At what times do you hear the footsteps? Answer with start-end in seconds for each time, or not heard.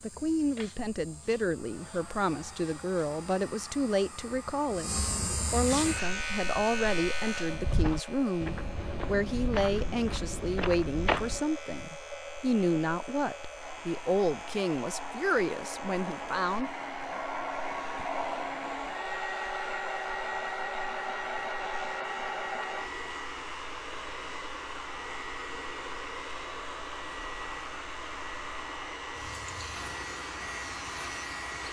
6.0-11.4.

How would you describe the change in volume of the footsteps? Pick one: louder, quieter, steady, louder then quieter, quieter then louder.
louder.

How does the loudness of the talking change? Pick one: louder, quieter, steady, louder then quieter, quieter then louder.
steady.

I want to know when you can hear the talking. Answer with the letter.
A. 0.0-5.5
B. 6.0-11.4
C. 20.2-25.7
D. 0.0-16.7
D.